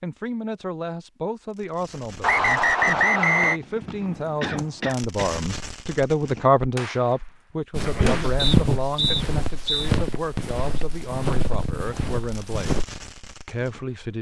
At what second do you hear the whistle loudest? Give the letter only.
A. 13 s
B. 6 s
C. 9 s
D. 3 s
D.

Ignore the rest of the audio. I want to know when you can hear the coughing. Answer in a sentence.
The coughing can be heard from 4.4 to 5.3 s and from 7.8 to 8.3 s.